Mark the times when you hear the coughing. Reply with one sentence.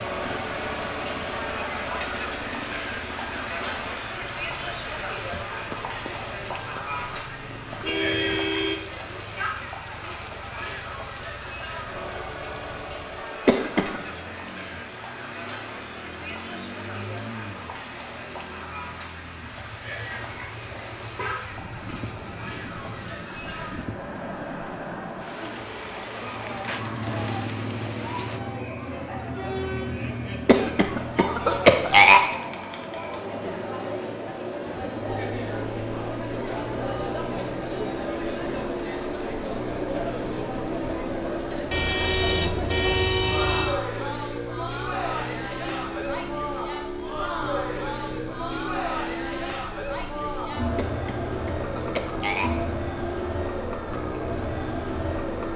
You can hear the coughing from 13.4 to 14.0 s, from 30.4 to 32.2 s and from 50.8 to 52.5 s.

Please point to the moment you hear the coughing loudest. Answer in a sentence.
The volume of the coughing peaks at 32 seconds.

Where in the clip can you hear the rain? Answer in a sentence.
You can hear the rain from 0.0 to 28.4 s.